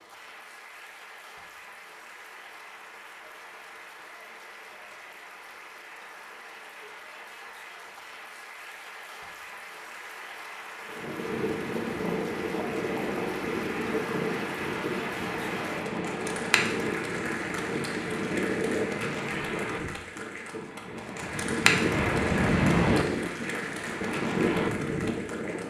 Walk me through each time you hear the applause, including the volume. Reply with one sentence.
The applause can be heard from 0.0 to 25.6 s, getting louder.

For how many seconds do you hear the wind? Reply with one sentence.
You can hear the wind for 15 seconds altogether.